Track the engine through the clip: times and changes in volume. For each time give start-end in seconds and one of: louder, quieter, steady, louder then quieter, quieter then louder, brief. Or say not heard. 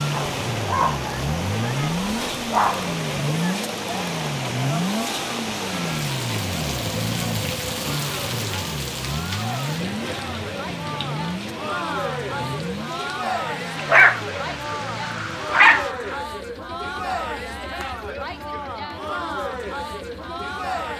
0.0-20.9 quieter.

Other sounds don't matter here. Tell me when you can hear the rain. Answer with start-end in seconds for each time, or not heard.
0.0-15.9.